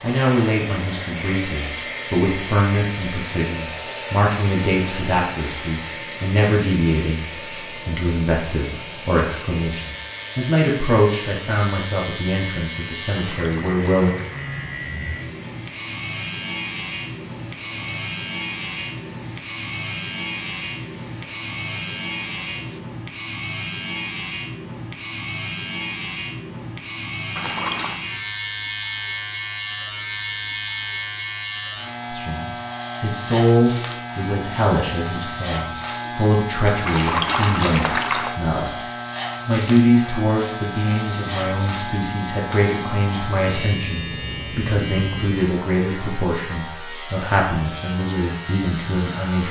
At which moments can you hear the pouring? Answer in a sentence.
The pouring can be heard from 13.3 to 14.4 s, from 27.4 to 28.0 s and from 36.9 to 38.4 s.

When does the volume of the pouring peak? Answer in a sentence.
The volume of the pouring peaks at 37 seconds.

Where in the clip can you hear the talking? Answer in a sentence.
You can hear the talking from 0.0 to 7.2 s, from 7.8 to 14.2 s and from 32.1 to 49.4 s.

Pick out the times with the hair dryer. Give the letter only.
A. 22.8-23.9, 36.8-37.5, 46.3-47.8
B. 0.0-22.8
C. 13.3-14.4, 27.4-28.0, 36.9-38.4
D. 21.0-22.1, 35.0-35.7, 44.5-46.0
B.